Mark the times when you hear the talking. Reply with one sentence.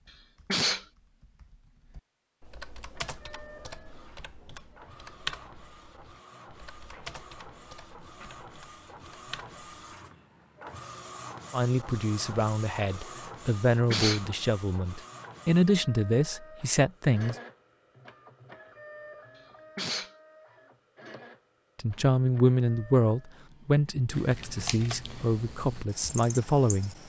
The talking can be heard from 11.5 to 17.4 s and from 21.8 to 26.9 s.